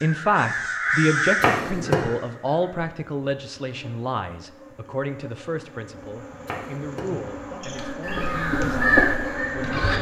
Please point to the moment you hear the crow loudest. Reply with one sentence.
The loudest moment of the crow is at 9 seconds.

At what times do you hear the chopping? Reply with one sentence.
You can hear the chopping from 1.4 to 1.9 s and from 6.5 to 7.0 s.